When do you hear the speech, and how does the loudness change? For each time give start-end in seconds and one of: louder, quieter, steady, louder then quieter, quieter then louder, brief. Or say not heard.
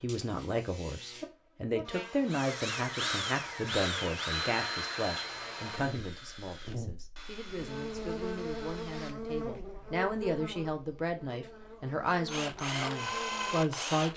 0.0-14.1 quieter then louder.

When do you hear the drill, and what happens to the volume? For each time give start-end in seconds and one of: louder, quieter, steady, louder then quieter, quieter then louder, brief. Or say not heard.
2.2-9.6 quieter
12.1-14.1 brief.